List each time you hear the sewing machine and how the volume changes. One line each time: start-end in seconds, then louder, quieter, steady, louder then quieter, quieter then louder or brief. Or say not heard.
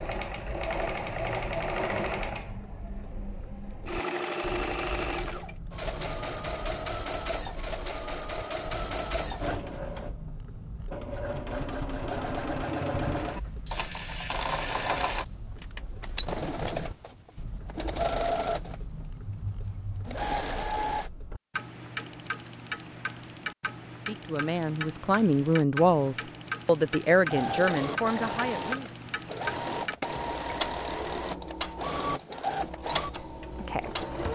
0.0-21.1 steady
27.2-34.2 steady.